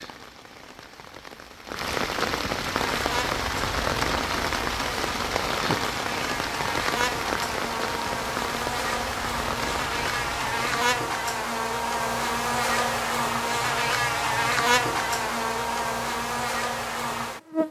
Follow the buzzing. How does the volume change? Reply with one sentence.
The loudness of the buzzing goes up.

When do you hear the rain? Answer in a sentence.
The rain can be heard from 0.0 to 10.8 s.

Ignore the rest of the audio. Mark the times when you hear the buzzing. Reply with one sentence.
The buzzing can be heard from 2.7 to 17.6 s.